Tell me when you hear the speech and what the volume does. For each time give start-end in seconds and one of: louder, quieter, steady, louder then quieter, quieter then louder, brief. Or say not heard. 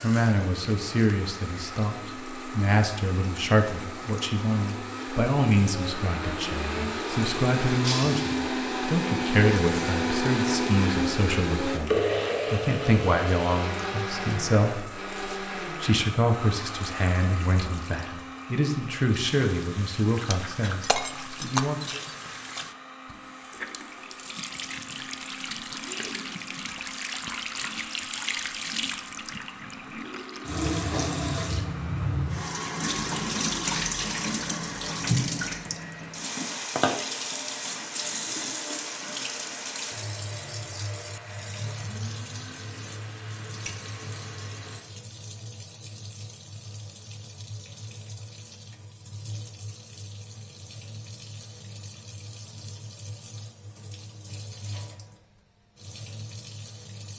0.0-22.0 steady.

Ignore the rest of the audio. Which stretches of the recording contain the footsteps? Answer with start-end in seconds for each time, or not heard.
not heard.